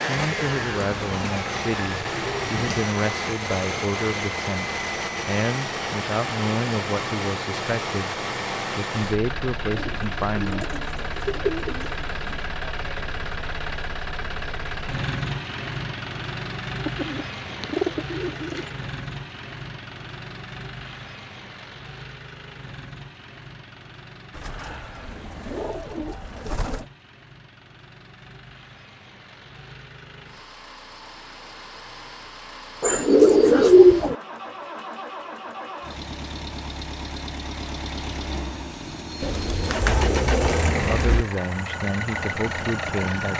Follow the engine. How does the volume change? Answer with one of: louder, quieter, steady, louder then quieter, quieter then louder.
quieter then louder.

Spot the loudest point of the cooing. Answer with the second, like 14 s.
34 s.